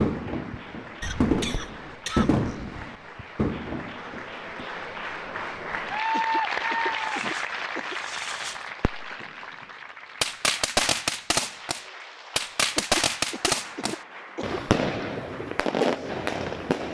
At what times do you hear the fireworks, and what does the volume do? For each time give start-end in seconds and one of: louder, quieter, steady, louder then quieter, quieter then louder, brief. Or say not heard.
0.0-4.7 louder then quieter
7.0-9.3 brief
10.2-16.9 steady.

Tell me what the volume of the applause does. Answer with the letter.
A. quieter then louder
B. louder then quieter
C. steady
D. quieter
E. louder
B.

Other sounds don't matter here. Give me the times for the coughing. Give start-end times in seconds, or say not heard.
1.0-2.9, 6.1-8.0, 12.8-14.6.